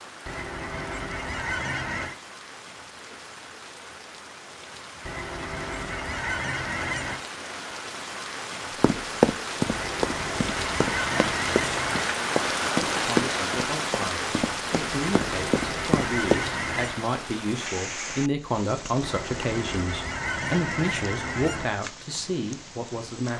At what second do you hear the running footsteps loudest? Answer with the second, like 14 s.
9 s.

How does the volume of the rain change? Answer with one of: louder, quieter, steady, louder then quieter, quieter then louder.
louder then quieter.